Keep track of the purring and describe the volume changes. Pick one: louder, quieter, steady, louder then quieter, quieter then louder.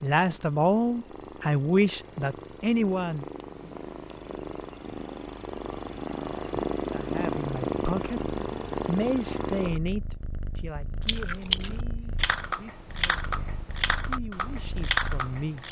louder then quieter.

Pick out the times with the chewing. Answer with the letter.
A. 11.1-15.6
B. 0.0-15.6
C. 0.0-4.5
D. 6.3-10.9
A.